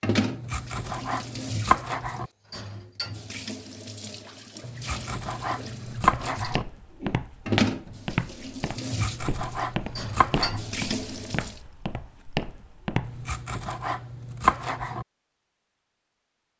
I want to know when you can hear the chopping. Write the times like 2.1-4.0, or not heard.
0.2-2.3, 4.7-6.7, 8.8-10.6, 13.1-15.1.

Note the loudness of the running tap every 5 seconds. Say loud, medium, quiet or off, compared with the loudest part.
loud, loud, loud, off.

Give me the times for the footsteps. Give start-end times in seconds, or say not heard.
5.8-13.3.